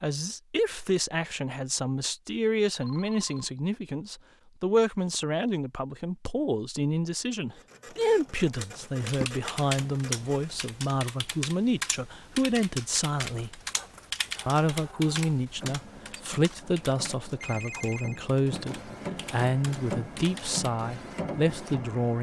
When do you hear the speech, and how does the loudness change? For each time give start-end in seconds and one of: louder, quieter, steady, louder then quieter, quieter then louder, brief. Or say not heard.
0.0-13.6 steady
14.4-22.1 steady.